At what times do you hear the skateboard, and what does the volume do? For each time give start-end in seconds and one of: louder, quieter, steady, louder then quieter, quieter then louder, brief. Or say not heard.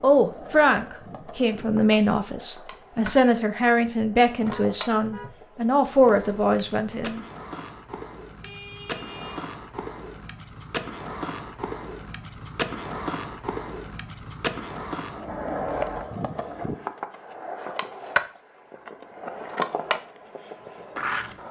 0.0-21.4 louder.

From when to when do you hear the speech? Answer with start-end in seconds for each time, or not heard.
0.0-7.2.